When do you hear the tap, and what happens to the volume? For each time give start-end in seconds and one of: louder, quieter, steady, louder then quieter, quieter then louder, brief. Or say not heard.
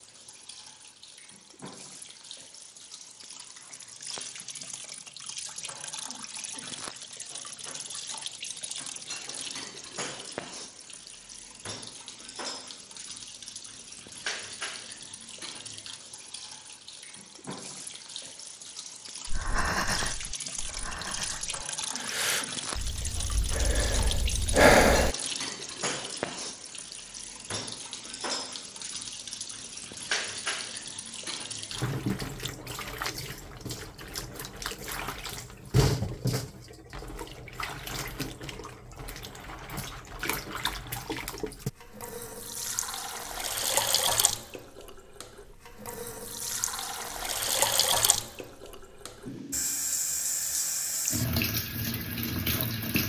0.0-53.0 louder.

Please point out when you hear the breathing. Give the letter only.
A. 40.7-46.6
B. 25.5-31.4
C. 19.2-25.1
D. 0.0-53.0
C.